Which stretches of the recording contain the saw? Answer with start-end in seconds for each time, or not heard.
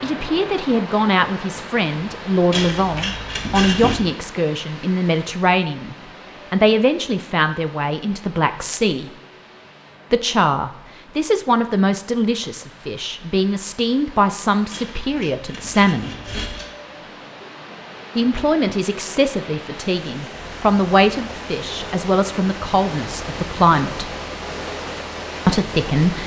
2.5-4.0, 14.7-16.6.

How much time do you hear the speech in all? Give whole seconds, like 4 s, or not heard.
22 s.